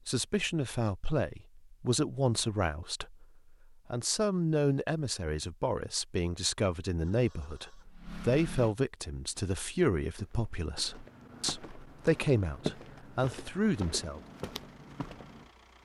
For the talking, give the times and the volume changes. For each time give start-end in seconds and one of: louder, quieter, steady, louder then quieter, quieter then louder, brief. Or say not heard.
0.1-14.2 steady.